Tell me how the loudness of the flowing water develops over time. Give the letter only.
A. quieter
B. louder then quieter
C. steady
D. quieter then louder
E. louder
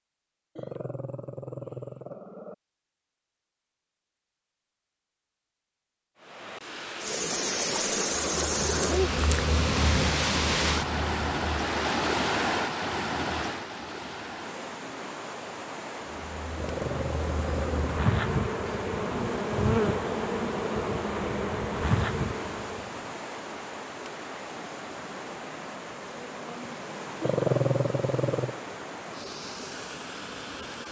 A.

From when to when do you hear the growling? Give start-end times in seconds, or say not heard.
0.6-2.5, 16.6-17.9, 27.2-28.6.